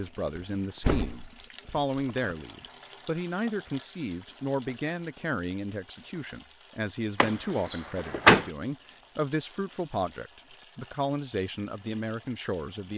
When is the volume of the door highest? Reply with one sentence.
The loudest moment of the door is at 8 seconds.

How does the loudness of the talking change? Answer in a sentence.
The loudness of the talking stays about the same.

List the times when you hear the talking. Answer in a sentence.
The talking can be heard from 0.0 to 12.9 s.